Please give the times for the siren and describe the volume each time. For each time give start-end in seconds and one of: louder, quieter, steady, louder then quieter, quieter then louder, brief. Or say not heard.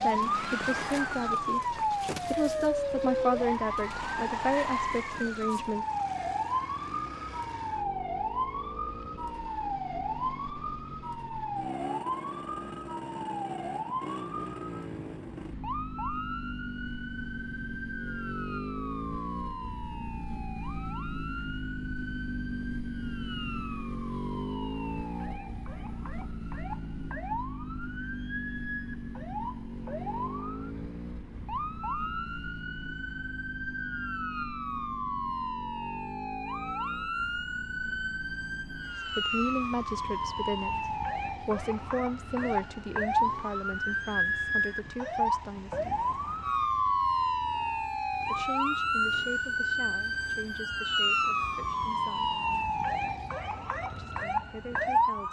0.0-55.2 quieter then louder.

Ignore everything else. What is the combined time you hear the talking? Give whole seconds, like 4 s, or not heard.
18 s.